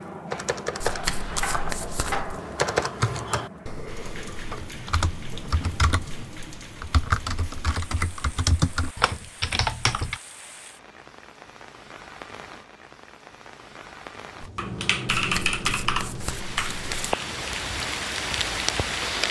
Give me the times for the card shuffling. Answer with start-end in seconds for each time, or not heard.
0.8-2.2, 15.2-17.1.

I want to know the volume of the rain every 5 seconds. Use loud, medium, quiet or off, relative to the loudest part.
medium, quiet, quiet, loud.